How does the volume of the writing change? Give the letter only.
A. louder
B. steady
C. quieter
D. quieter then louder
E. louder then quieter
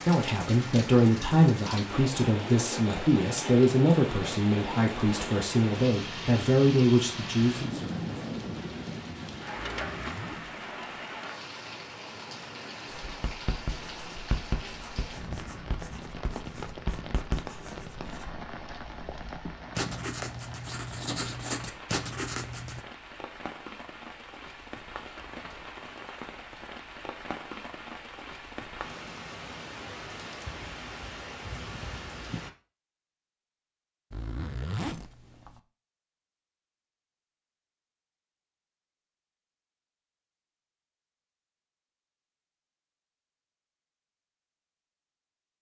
D.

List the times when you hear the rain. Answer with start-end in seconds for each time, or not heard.
0.0-32.5.